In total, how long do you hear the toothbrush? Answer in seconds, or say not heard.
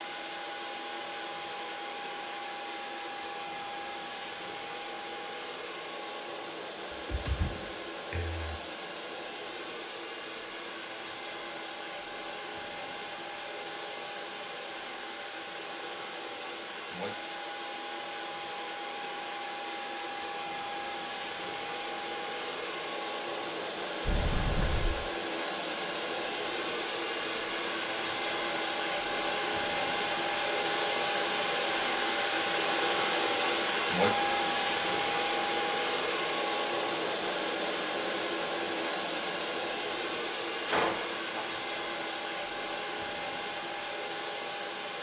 not heard.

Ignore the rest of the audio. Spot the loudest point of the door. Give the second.
41 s.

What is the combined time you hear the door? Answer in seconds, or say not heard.
4 s.